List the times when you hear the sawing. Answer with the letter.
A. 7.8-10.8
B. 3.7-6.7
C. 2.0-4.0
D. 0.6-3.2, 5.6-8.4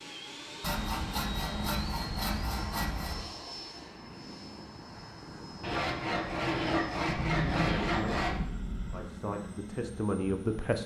D.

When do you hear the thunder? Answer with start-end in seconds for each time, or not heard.
7.0-9.1.